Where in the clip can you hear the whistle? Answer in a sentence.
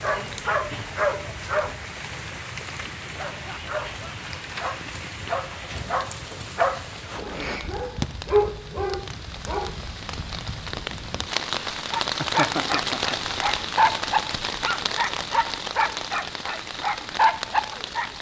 You can't hear the whistle here.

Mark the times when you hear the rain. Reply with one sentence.
The rain can be heard from 0.0 to 18.1 s.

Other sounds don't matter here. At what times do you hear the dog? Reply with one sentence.
The dog can be heard from 0.0 to 1.8 s, from 3.4 to 9.8 s and from 11.9 to 18.1 s.